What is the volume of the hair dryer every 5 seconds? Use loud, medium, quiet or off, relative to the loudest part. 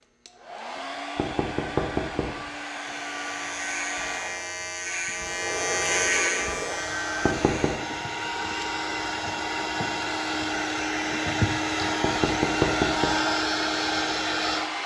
medium, medium, loud.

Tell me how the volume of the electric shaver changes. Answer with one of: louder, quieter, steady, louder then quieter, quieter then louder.
louder then quieter.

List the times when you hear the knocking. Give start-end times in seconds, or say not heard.
1.1-2.4, 7.2-7.8, 12.0-13.2.